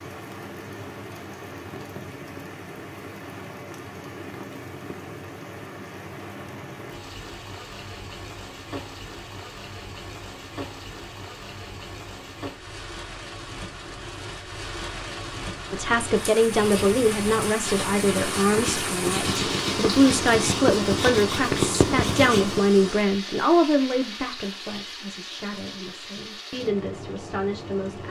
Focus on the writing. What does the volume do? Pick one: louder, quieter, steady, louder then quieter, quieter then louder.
louder.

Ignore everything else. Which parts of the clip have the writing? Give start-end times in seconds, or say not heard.
16.4-22.7.